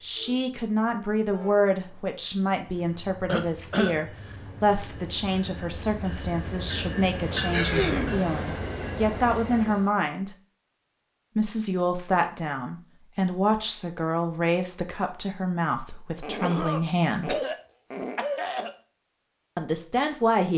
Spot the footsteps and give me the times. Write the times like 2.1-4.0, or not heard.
not heard.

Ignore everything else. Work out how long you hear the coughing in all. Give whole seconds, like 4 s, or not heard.
4 s.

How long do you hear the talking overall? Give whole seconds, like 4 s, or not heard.
17 s.